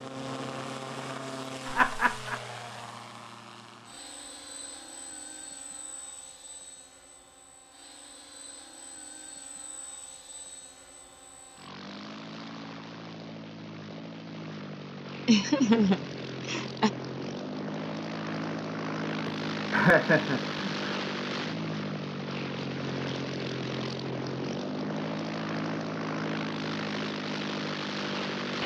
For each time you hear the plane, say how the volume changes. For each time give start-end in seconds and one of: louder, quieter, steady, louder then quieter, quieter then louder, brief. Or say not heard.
0.0-28.6 quieter then louder.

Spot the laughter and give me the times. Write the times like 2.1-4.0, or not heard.
1.6-2.4, 15.2-16.9, 19.2-20.9.